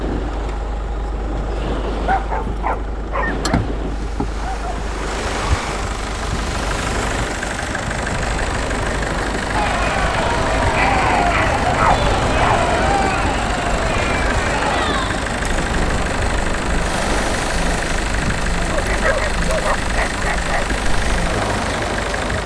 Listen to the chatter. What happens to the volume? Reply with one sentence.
The loudness of the chatter goes down.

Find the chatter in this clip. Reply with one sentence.
You can hear the chatter from 9.5 to 22.4 s.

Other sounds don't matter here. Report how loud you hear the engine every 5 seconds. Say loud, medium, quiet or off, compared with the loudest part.
medium, loud, loud, loud, loud.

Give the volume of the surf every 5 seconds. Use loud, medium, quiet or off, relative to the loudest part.
medium, loud, loud, loud, medium.